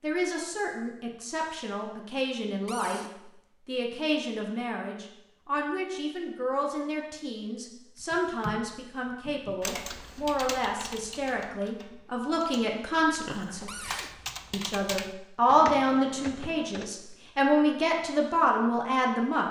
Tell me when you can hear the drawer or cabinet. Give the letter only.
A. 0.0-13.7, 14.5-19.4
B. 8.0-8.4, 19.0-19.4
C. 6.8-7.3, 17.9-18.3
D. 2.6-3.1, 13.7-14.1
D.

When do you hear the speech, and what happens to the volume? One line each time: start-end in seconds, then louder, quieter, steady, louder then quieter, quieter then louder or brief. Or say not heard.
0.0-13.7 steady
14.5-19.4 quieter then louder.